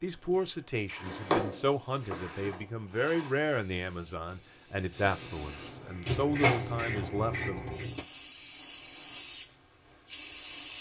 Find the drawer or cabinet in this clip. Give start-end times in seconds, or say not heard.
0.9-3.4, 6.0-8.1.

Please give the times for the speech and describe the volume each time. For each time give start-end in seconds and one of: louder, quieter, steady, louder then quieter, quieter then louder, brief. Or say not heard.
0.0-7.8 steady.